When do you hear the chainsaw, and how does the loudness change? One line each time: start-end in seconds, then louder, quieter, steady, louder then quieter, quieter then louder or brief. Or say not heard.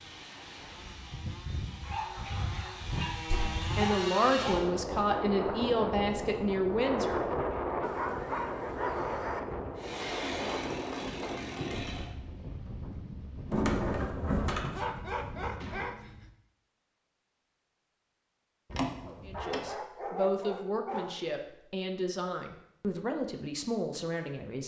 0.0-4.7 louder
9.8-12.1 brief.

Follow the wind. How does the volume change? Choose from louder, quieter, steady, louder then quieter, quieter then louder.
louder then quieter.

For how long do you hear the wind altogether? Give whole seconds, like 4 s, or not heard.
16 s.